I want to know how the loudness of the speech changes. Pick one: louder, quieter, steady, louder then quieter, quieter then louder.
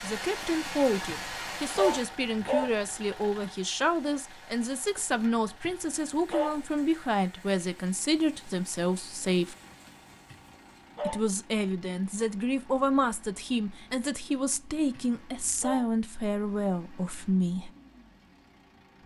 steady.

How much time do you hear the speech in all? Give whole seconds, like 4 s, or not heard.
16 s.